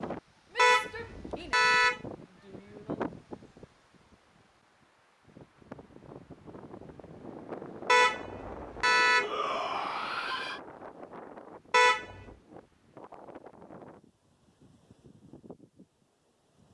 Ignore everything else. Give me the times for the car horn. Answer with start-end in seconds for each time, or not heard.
0.6-2.0, 7.8-9.3, 11.7-12.2.